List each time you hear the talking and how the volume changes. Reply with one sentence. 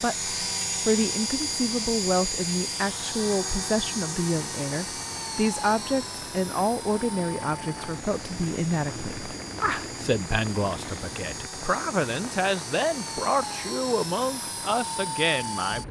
You can hear the talking from 0.0 to 15.8 s, at a steady volume.